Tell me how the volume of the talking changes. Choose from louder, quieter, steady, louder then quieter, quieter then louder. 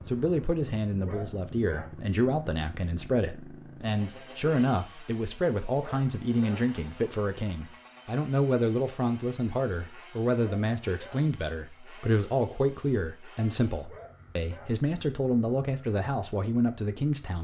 steady.